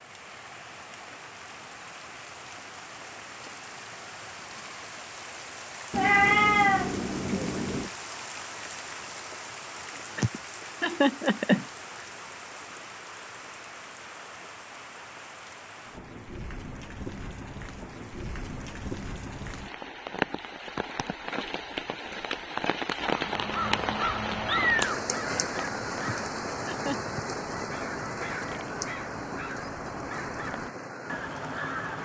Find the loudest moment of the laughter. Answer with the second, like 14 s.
11 s.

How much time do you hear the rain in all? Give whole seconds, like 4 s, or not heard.
32 s.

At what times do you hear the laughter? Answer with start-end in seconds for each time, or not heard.
10.2-11.7, 26.0-27.0.